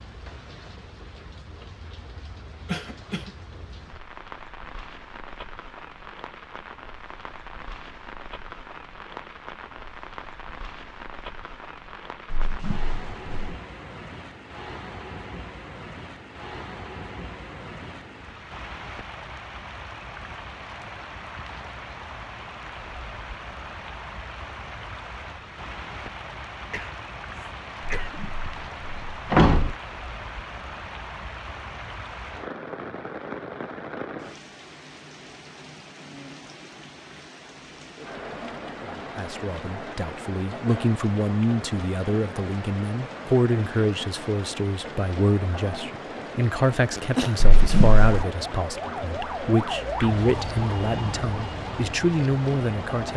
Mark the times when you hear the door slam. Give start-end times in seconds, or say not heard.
12.3-13.6, 28.0-29.8, 47.4-48.2.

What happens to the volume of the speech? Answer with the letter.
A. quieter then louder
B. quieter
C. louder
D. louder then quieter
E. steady
E.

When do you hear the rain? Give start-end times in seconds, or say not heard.
0.0-53.1.